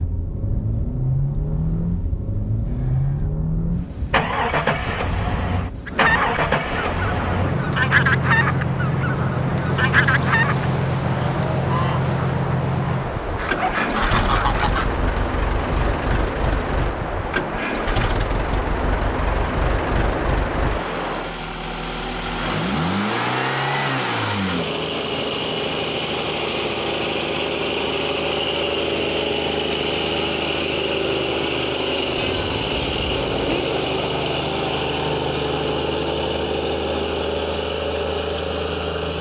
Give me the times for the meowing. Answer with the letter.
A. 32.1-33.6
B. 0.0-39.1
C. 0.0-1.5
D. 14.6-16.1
A.